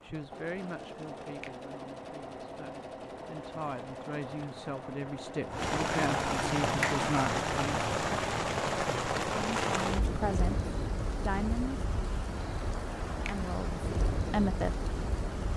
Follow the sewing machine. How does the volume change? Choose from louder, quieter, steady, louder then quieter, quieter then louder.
steady.